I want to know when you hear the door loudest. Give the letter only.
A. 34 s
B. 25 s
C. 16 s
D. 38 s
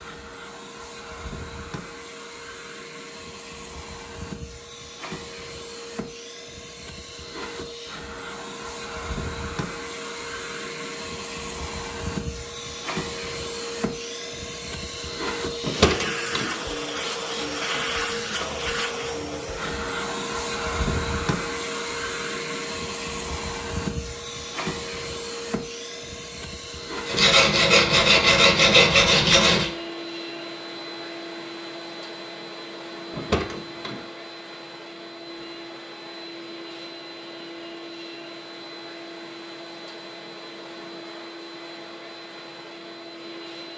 C.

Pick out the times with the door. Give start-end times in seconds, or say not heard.
15.6-16.6, 33.1-34.0.